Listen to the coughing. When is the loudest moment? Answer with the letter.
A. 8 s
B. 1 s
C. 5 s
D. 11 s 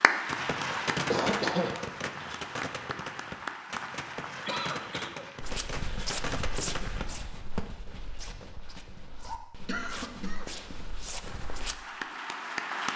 B.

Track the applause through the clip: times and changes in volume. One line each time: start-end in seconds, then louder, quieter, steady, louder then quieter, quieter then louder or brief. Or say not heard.
0.0-5.2 quieter
11.2-12.9 brief.